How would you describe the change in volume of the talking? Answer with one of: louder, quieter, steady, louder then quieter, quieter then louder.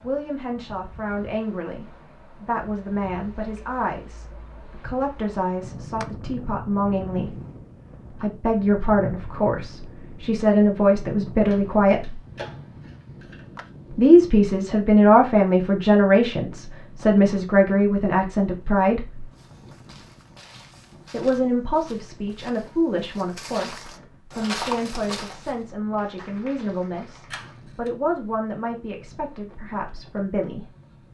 louder then quieter.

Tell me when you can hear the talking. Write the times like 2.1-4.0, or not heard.
0.0-7.3, 8.1-12.2, 13.9-19.2, 21.1-30.7.